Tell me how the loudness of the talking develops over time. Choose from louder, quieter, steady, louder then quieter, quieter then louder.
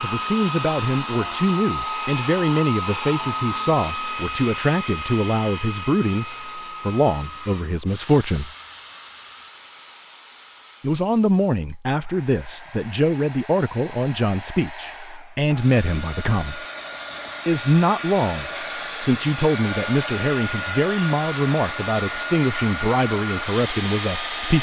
steady.